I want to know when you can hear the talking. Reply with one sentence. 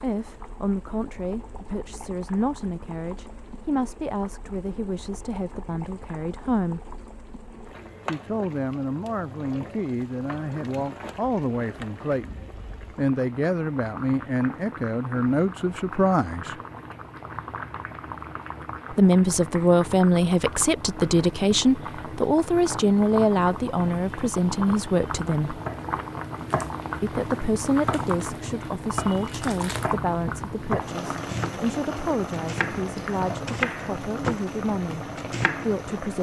The talking can be heard from 0.0 to 7.0 s, from 8.1 to 16.6 s, from 18.9 to 25.6 s, from 27.0 to 35.0 s and from 35.6 to 36.1 s.